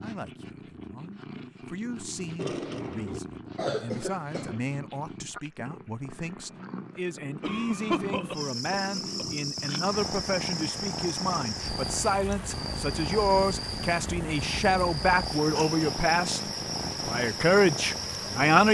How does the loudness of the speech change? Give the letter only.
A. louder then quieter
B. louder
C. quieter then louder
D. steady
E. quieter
B.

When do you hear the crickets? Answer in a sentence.
You can hear the crickets from 8.3 to 18.6 s.